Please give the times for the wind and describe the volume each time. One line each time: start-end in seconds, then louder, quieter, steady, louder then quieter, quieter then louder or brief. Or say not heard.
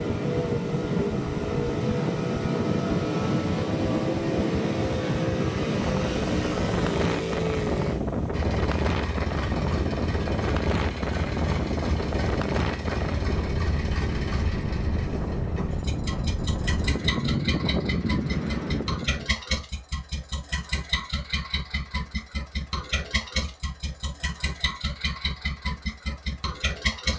0.0-19.3 steady.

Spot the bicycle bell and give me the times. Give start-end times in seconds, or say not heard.
not heard.